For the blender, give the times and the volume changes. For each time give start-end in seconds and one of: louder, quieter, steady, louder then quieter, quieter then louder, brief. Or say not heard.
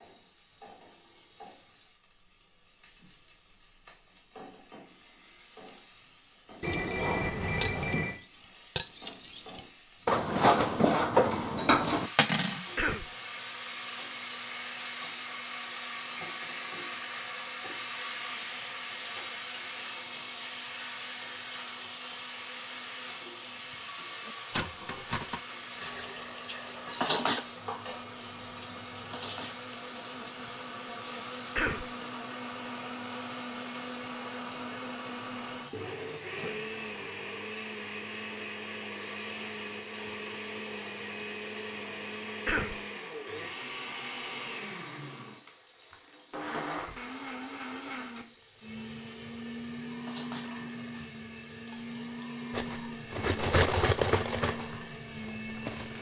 13.0-55.9 louder.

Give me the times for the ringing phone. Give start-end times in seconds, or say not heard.
6.6-8.2.